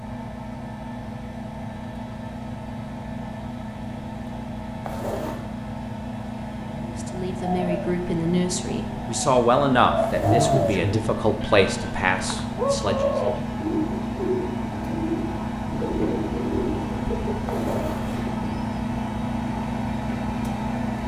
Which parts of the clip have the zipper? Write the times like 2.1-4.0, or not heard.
4.8-5.4, 10.0-10.8, 17.4-18.2.